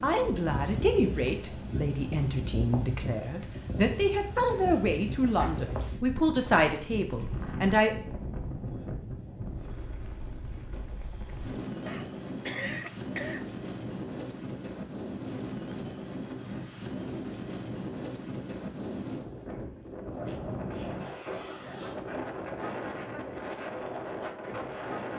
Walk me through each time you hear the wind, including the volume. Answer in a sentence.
The wind can be heard from 0.0 to 25.1 s, at a steady volume.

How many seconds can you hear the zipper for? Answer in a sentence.
You can hear the zipper for 2 seconds altogether.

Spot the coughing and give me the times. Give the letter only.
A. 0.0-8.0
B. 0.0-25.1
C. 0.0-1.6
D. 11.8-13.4
D.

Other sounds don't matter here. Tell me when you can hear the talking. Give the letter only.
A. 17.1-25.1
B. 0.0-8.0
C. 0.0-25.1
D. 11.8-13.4
B.